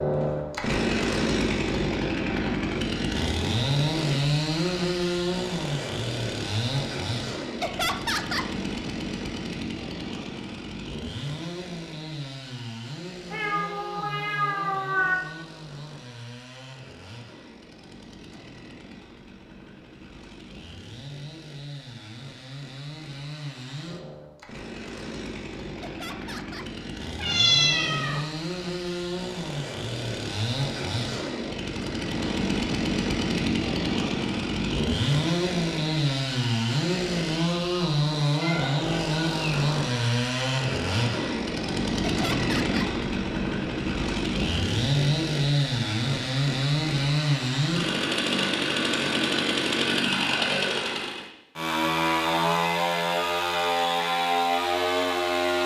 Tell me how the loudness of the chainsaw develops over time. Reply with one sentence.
The loudness of the chainsaw goes down, then up.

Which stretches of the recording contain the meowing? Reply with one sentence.
The meowing can be heard from 13.3 to 15.2 s, from 27.1 to 28.2 s and from 38.4 to 39.5 s.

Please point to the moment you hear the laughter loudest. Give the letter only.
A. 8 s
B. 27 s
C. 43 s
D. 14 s
A.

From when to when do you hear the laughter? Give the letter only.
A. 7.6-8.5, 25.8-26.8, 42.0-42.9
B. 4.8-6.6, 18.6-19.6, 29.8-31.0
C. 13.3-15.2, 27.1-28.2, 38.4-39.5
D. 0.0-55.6
A.